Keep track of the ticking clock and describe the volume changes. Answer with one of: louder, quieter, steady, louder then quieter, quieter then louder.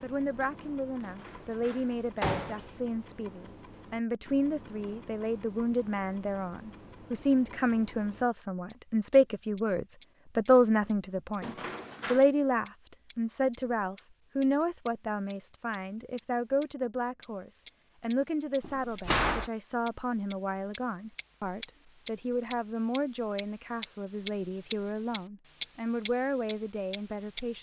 louder.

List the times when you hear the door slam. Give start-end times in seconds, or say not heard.
1.0-2.8, 11.4-12.2, 18.6-19.5.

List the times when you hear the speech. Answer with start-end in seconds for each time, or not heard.
0.0-27.5.